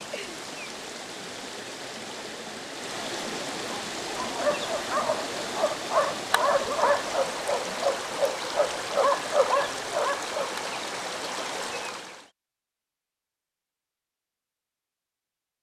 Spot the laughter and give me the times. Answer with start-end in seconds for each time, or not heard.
not heard.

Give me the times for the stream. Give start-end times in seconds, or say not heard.
0.0-12.3.